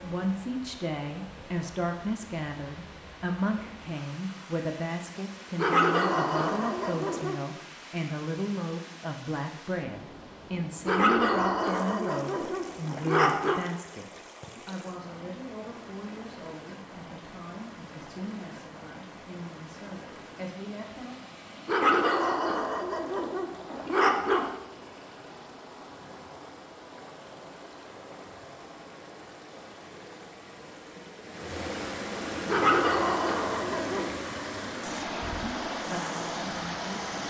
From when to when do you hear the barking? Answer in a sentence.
You can hear the barking from 5.5 to 7.4 s, from 10.8 to 13.7 s, from 21.6 to 24.6 s and from 32.5 to 34.1 s.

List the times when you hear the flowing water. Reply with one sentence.
The flowing water can be heard from 0.0 to 37.2 s.